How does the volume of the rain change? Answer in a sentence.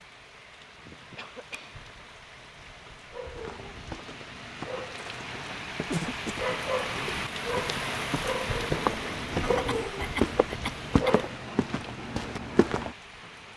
The loudness of the rain goes up, then down.